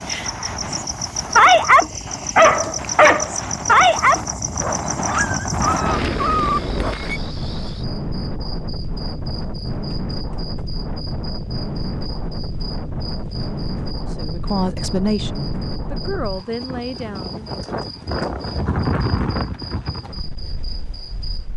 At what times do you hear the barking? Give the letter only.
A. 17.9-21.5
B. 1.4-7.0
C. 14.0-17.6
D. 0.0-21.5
B.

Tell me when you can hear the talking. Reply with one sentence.
You can hear the talking from 14.0 to 17.6 s.